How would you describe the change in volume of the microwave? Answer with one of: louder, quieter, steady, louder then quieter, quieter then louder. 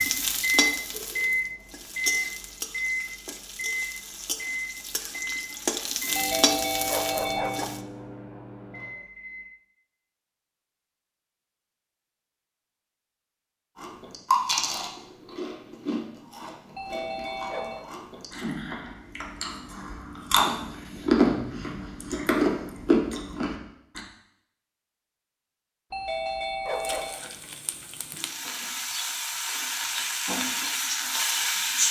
quieter.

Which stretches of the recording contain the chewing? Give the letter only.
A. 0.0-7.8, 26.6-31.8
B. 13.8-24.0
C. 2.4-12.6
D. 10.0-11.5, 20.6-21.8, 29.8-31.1
B.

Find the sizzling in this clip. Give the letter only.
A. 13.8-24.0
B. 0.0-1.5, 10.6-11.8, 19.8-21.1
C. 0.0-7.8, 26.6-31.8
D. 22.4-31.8
C.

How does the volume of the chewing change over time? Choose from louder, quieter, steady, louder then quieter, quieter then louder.
quieter then louder.